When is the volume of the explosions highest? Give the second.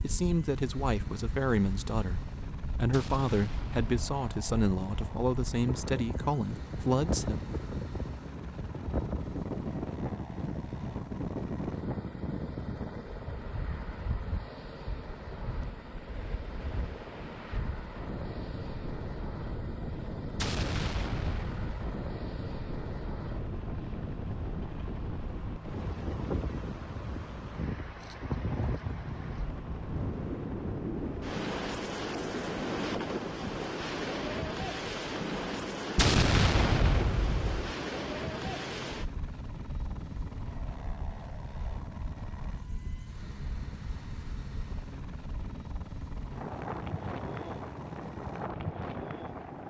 36 s.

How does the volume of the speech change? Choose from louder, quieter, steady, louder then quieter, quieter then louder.
steady.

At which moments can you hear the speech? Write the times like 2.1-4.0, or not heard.
0.0-7.5.